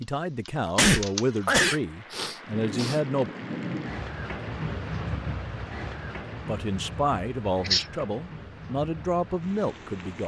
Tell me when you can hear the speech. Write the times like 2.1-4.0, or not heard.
0.0-3.3, 6.4-10.2.